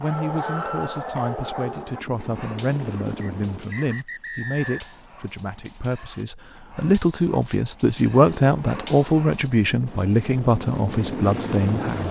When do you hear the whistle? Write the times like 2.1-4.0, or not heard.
3.2-5.0.